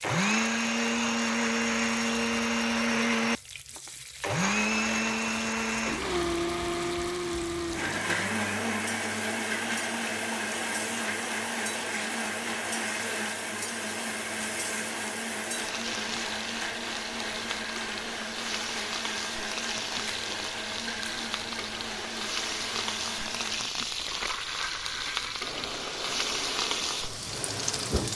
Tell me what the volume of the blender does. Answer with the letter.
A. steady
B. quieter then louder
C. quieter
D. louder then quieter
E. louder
C.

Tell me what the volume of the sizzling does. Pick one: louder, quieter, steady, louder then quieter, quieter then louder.
louder.